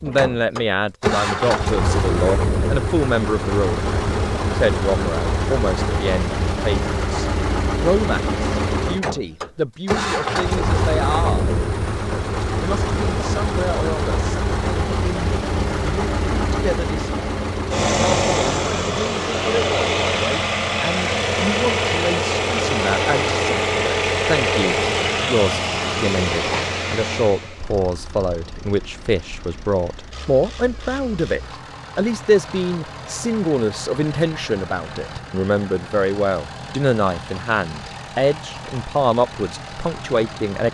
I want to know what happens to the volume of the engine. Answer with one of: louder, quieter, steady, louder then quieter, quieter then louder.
quieter.